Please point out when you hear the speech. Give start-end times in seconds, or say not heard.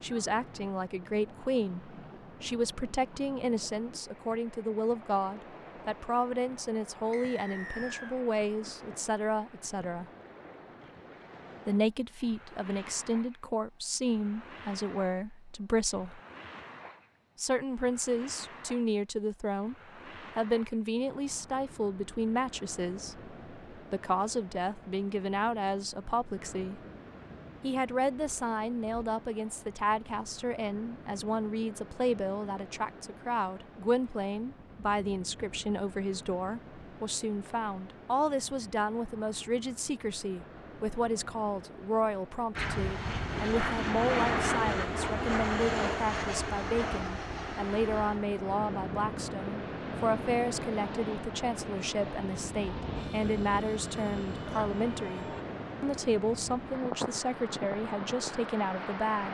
0.0-10.1, 11.7-16.2, 17.4-19.8, 20.4-26.8, 27.6-59.2.